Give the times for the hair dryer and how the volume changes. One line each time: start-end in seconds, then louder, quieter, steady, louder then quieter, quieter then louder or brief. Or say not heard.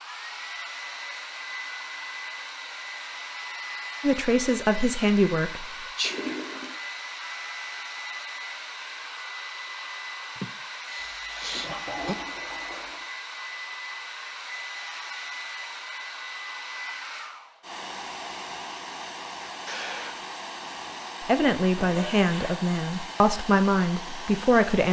0.0-24.8 steady.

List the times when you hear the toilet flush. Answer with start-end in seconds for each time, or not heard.
6.0-6.8, 11.0-13.1, 21.8-22.6.